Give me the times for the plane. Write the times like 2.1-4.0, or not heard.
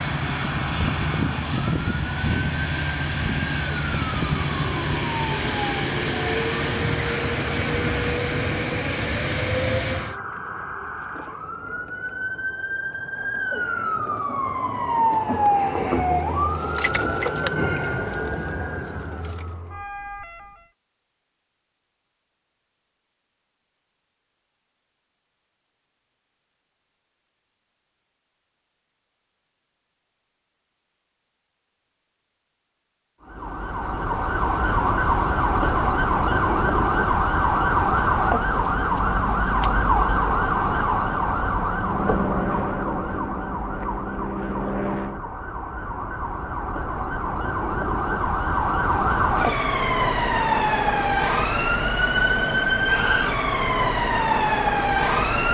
0.0-10.2, 41.8-45.2.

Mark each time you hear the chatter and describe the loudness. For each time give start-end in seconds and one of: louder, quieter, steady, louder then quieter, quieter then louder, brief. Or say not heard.
not heard.